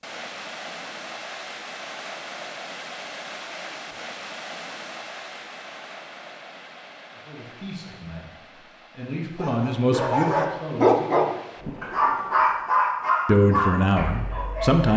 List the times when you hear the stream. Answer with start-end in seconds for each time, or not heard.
0.0-12.7.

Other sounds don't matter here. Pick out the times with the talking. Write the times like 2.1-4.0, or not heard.
7.2-11.3, 13.2-14.9.